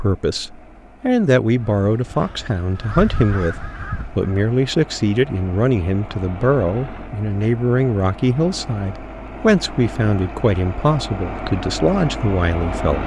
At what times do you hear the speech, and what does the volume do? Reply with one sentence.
You can hear the speech from 0.0 to 13.0 s, at a steady volume.